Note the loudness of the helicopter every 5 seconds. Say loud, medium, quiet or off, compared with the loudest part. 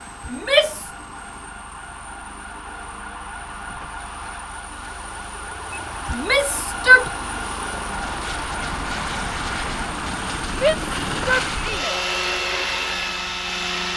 quiet, medium, loud.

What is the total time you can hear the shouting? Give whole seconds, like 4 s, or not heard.
3 s.